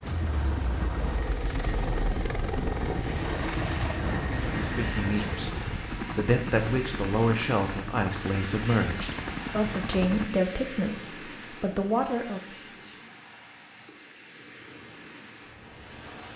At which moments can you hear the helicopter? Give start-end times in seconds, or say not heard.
0.0-10.3.